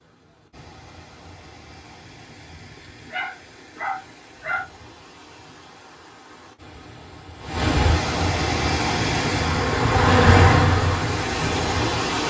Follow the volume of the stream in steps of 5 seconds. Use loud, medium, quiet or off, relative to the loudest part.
quiet, loud, loud.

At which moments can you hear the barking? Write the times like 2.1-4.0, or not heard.
3.1-4.7.